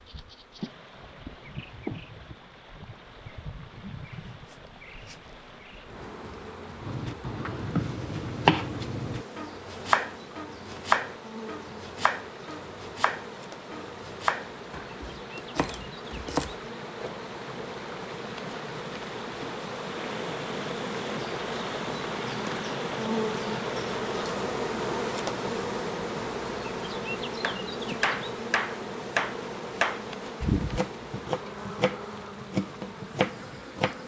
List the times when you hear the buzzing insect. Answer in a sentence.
The buzzing insect can be heard from 0.0 to 34.0 s.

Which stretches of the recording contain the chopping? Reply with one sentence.
The chopping can be heard from 6.8 to 17.8 s and from 27.4 to 34.0 s.